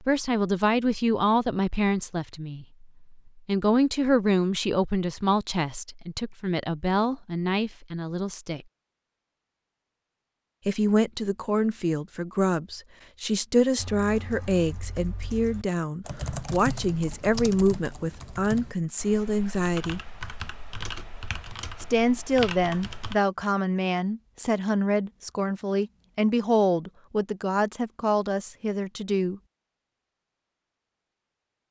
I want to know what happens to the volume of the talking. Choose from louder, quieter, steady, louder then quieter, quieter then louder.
steady.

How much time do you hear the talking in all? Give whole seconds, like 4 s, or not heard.
26 s.